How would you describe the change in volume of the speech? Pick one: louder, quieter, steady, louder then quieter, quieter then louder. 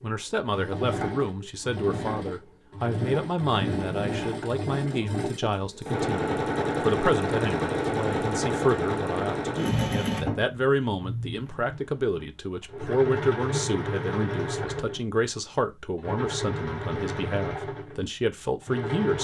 steady.